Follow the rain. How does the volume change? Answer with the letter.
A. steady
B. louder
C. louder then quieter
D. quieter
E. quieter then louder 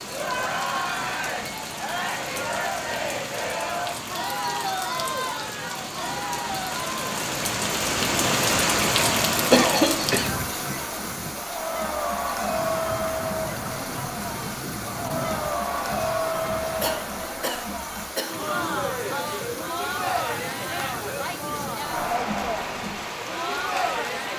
C.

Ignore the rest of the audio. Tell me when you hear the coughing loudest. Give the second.
10 s.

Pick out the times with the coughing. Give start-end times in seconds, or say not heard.
9.5-10.3, 16.8-18.4.